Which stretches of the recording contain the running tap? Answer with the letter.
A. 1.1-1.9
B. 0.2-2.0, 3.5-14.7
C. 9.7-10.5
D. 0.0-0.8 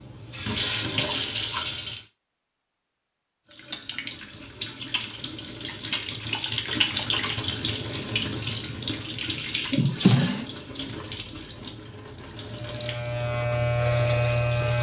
B.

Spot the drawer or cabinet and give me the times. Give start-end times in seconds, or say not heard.
9.7-10.5.